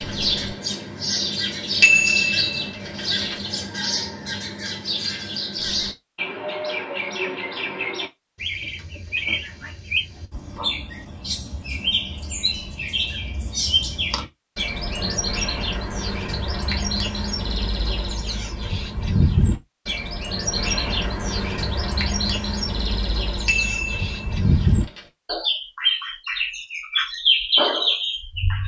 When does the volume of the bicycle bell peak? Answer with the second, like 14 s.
2 s.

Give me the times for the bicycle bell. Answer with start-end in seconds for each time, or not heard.
1.8-3.4, 23.4-25.0.